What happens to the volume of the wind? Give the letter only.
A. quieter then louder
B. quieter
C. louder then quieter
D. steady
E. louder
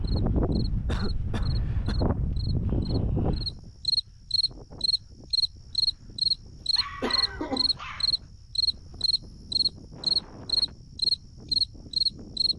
A.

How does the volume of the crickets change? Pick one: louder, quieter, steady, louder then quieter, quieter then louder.
louder.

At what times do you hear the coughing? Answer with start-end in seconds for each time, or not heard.
0.8-2.0, 7.0-7.8.